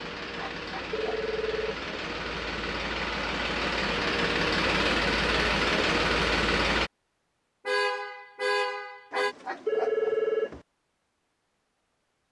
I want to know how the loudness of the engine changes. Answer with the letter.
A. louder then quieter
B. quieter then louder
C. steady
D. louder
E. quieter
D.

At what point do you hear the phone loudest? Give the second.
10 s.